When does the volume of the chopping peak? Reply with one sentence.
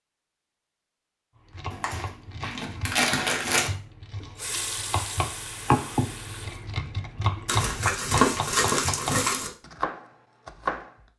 The volume of the chopping peaks at 6 seconds.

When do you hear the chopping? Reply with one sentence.
The chopping can be heard from 1.4 to 11.1 s.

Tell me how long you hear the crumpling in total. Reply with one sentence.
The crumpling can be heard for 4 seconds in total.